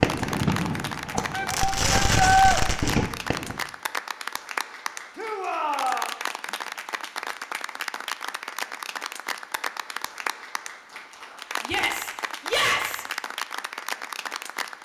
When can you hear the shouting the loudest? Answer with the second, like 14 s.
2 s.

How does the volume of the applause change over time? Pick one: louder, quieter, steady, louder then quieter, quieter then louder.
steady.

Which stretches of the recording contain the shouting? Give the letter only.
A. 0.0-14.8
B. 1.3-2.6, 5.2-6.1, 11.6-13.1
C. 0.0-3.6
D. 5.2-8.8
B.